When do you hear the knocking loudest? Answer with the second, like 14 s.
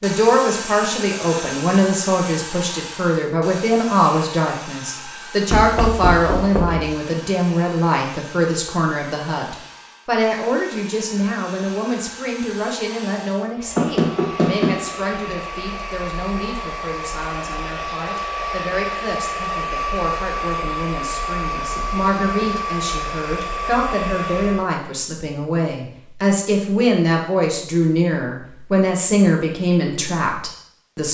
14 s.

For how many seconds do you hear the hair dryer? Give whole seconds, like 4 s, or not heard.
25 s.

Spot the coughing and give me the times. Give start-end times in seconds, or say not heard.
not heard.